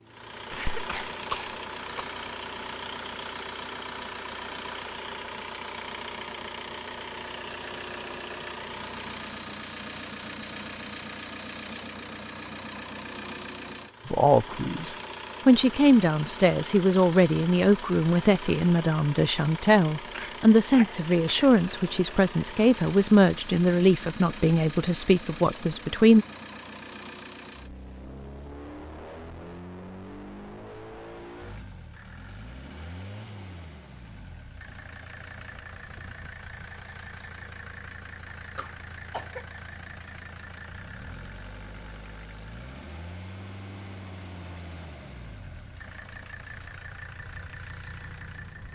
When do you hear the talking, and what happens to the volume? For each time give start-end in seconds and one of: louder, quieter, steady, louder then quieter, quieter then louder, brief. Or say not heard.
14.1-26.2 steady.